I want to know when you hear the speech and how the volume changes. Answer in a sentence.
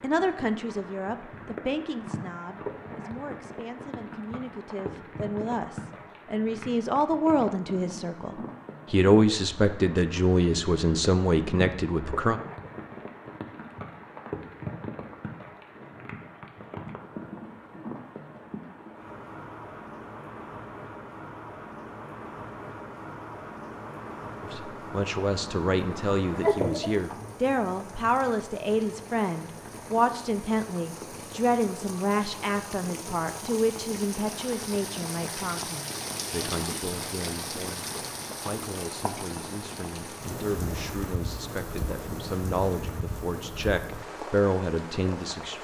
The speech can be heard from 0.0 to 12.4 s, getting quieter then louder; and from 24.4 to 45.5 s, getting quieter then louder.